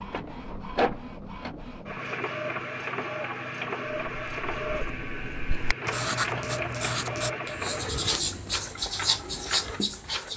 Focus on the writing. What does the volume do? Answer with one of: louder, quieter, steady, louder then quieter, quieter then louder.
louder.